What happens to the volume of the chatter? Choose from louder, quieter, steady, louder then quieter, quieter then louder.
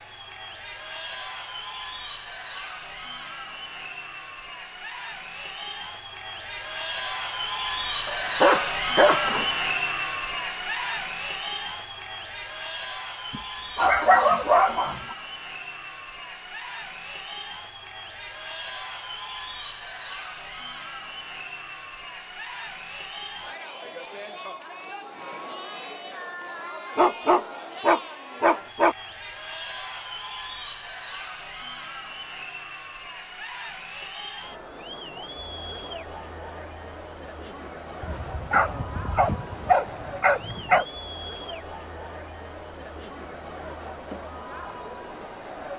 quieter.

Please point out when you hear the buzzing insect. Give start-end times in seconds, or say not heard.
not heard.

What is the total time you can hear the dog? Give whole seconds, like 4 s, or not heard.
8 s.